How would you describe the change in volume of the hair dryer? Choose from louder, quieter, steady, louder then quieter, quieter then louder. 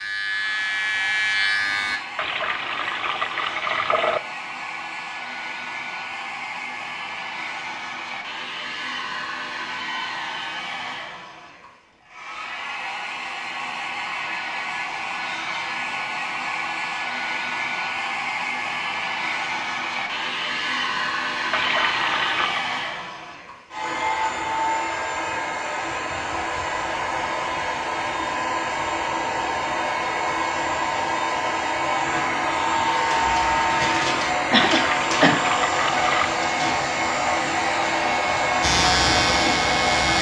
louder.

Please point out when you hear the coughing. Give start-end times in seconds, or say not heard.
34.5-35.4.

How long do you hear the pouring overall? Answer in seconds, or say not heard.
5 s.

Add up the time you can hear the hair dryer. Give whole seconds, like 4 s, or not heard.
40 s.